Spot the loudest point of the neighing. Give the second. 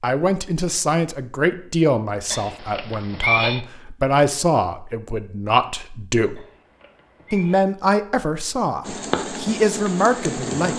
3 s.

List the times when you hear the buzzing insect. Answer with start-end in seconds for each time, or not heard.
8.8-10.7.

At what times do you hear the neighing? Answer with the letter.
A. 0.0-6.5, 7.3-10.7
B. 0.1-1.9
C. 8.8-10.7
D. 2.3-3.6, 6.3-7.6
D.